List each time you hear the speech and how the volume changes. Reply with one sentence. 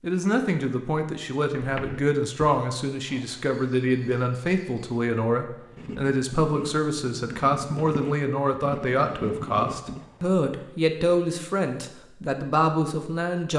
You can hear the speech from 0.0 to 13.5 s, at a steady volume.